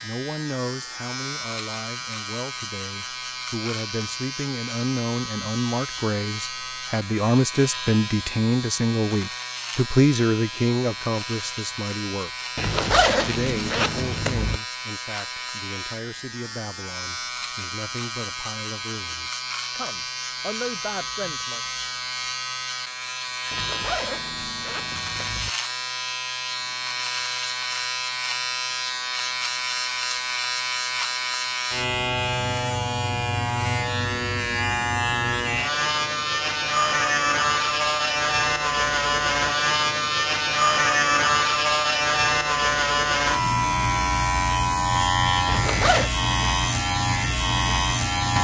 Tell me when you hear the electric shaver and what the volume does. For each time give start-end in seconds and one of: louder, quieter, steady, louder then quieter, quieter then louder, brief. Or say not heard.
0.0-48.3 louder.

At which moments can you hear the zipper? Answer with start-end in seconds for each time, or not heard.
12.6-14.6, 23.5-25.5, 45.5-46.1.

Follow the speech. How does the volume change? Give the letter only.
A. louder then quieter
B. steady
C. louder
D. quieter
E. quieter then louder
A.